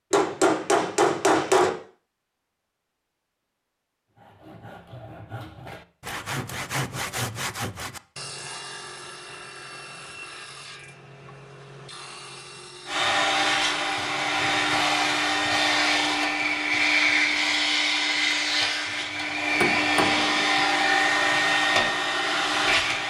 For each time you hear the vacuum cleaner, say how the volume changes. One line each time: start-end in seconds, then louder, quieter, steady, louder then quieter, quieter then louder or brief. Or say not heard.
12.8-23.0 steady.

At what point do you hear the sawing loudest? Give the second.
7 s.